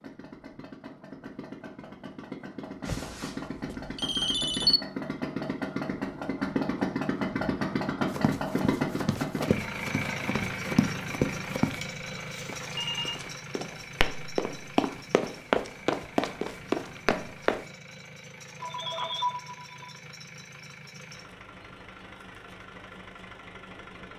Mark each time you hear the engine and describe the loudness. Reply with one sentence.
You can hear the engine from 0.0 to 24.1 s, getting louder then quieter.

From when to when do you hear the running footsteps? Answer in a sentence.
You can hear the running footsteps from 8.1 to 11.8 s and from 12.4 to 17.6 s.